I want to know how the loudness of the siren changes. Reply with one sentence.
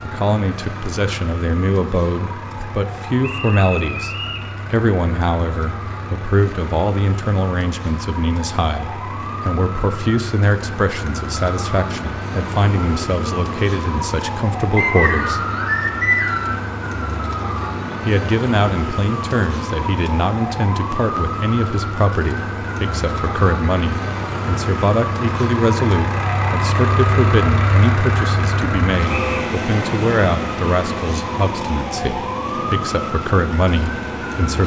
The volume of the siren goes up.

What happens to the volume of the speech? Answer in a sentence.
The volume of the speech stays about the same.